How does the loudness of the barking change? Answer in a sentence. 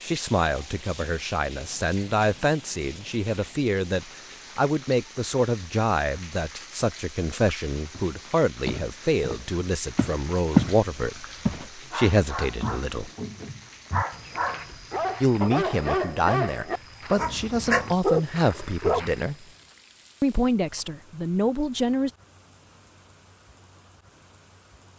The volume of the barking goes up.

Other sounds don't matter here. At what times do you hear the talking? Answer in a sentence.
You can hear the talking from 0.0 to 13.1 s, from 15.2 to 19.4 s and from 20.2 to 22.1 s.